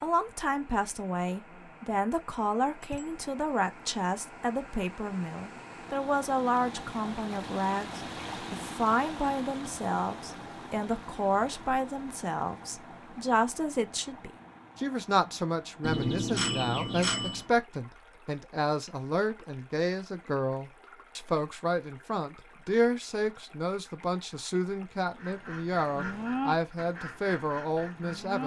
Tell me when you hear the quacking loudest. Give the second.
26 s.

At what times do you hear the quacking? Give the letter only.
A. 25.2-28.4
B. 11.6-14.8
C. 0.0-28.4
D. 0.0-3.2
A.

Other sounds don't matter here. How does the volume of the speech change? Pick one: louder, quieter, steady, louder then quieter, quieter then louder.
steady.